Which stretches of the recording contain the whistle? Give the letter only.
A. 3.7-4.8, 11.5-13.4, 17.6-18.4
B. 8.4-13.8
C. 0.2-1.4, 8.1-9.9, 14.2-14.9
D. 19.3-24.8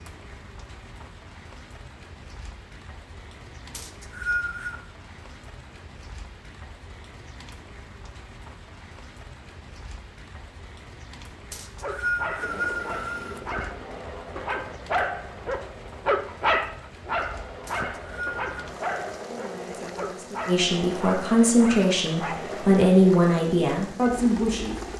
A.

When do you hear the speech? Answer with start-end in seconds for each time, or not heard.
19.3-24.8.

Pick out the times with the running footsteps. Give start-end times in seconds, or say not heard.
not heard.